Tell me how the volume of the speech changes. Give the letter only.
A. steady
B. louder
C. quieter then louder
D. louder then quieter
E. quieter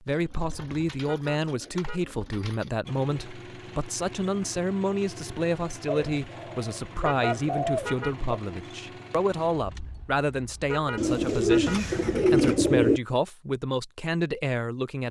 A.